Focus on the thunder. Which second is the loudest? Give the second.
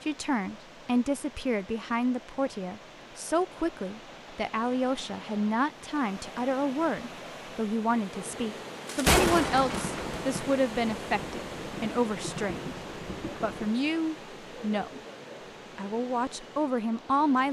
9 s.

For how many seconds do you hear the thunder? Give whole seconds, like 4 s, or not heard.
5 s.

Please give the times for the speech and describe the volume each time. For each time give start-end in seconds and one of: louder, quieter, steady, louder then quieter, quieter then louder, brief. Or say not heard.
0.0-12.7 steady
13.4-15.0 brief
15.8-17.4 brief.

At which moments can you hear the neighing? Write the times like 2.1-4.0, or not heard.
not heard.